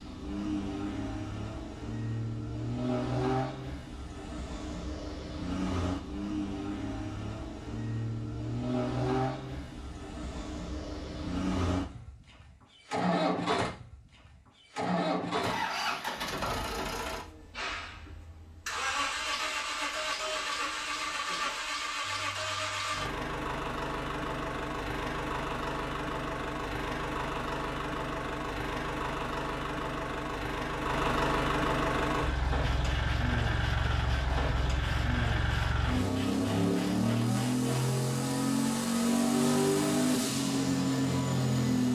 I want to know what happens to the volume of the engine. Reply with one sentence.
The loudness of the engine goes up.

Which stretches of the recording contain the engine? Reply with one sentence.
The engine can be heard from 0.0 to 41.8 s.